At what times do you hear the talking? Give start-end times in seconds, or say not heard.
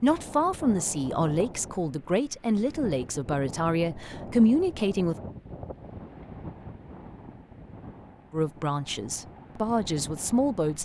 0.0-5.2, 8.3-10.7.